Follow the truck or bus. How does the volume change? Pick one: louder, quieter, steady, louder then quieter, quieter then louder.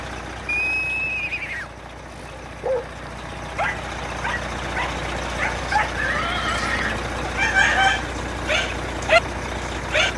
louder.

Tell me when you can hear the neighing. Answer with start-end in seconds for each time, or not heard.
0.5-2.4, 5.9-8.0.